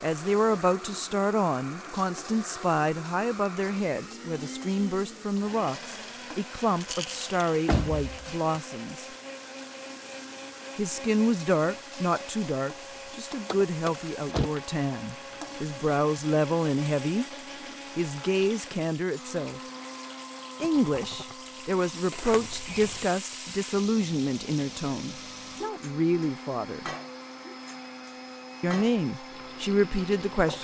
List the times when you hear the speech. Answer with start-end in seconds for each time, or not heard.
0.0-9.1, 10.8-17.2, 17.9-19.6, 20.6-26.9, 28.6-30.5.